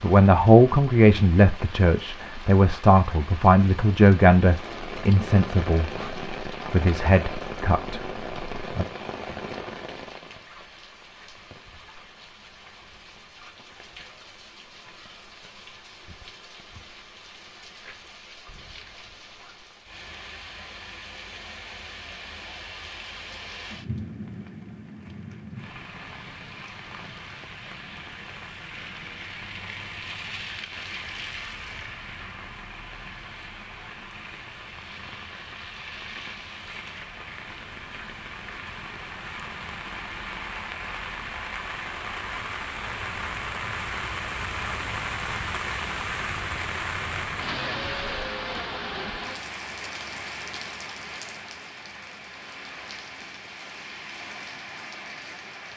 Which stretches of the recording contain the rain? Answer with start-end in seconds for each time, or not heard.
0.0-55.7.